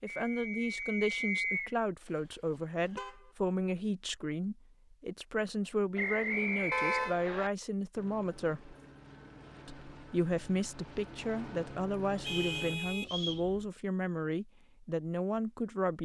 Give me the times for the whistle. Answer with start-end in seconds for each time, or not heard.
0.1-1.8, 6.0-7.5, 12.2-13.4.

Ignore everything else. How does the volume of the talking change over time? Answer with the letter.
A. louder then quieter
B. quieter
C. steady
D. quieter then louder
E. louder
C.